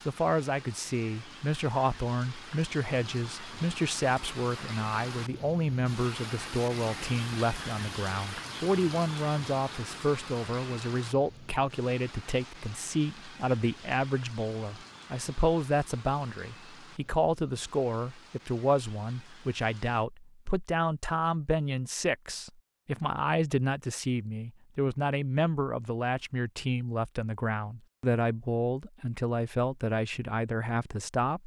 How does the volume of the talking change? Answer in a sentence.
The volume of the talking stays about the same.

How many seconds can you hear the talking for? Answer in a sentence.
You can hear the talking for 31 seconds altogether.